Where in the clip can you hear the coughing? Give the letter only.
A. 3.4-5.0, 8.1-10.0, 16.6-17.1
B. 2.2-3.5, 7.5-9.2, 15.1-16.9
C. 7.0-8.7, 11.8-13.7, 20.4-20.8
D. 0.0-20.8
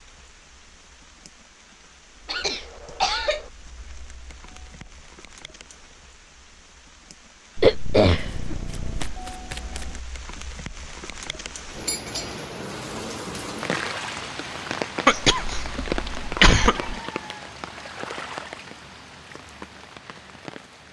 B.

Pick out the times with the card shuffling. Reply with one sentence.
You can hear the card shuffling from 3.4 to 5.0 s, from 8.1 to 10.0 s and from 16.6 to 17.1 s.